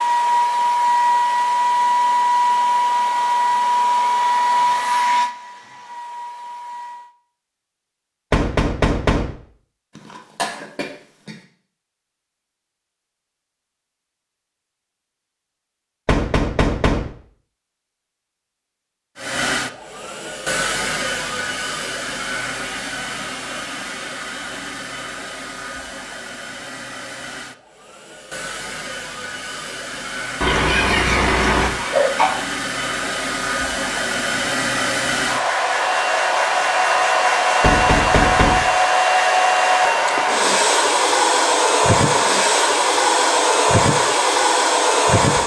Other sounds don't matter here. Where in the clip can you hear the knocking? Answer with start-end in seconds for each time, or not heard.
8.3-9.3, 16.1-17.1, 37.6-38.7.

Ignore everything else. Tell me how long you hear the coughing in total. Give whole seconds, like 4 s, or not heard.
3 s.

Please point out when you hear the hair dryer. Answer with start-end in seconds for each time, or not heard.
0.0-7.1, 19.1-45.4.